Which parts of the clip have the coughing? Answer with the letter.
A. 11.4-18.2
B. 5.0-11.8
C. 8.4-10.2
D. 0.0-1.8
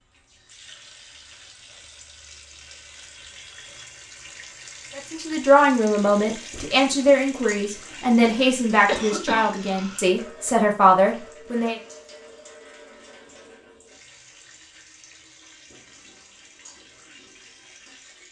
C.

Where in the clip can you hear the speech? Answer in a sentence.
You can hear the speech from 5.0 to 11.8 s.